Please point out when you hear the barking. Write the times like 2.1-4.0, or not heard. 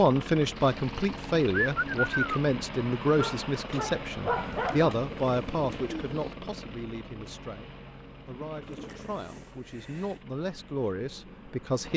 3.1-5.0.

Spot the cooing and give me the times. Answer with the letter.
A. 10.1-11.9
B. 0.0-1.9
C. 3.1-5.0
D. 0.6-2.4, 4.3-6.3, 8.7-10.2
D.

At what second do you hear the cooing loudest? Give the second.
2 s.